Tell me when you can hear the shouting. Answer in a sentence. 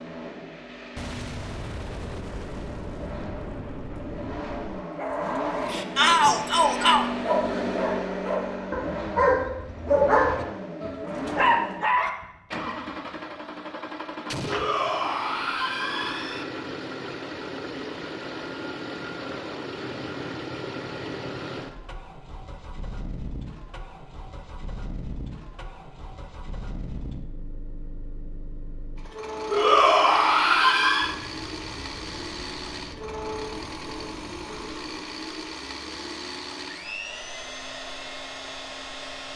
You can hear the shouting from 6.0 to 7.0 s, from 14.4 to 16.4 s and from 29.5 to 31.1 s.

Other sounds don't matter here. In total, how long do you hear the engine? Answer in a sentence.
You can hear the engine for 39 seconds altogether.